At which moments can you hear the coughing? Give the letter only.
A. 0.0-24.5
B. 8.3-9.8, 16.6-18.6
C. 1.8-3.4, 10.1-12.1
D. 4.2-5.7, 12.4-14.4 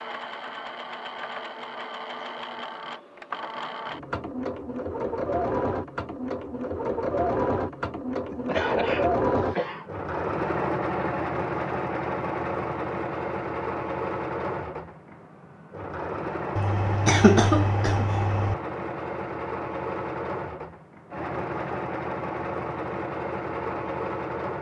B.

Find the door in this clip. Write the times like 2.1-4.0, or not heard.
not heard.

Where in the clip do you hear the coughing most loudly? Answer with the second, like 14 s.
17 s.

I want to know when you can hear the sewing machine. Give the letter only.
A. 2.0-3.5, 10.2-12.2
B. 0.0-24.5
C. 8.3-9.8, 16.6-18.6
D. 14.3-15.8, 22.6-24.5
B.